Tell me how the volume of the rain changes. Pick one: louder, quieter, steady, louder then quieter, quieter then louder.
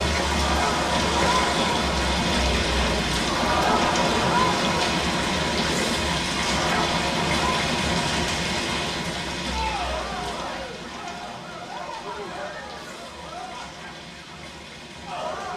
quieter.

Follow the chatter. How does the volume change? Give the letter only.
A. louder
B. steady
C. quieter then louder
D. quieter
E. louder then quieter
D.